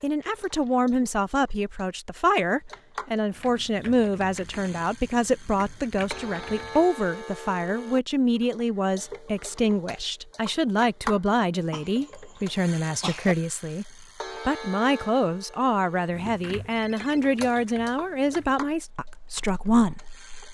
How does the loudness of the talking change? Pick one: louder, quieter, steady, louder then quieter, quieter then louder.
steady.